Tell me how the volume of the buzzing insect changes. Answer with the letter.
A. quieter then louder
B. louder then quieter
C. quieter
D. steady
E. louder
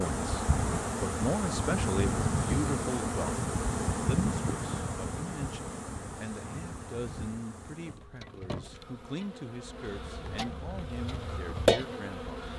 A.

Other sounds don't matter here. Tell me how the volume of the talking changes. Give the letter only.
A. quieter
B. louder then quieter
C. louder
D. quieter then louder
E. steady
A.